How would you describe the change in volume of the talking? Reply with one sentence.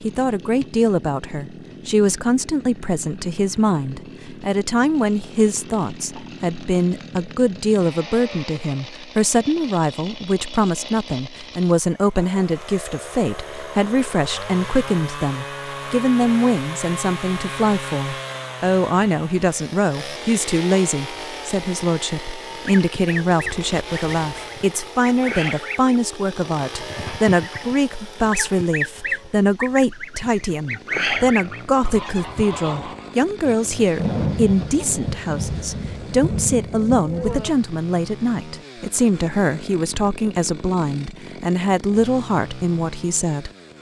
The volume of the talking stays about the same.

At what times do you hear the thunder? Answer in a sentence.
The thunder can be heard from 34.0 to 37.5 s.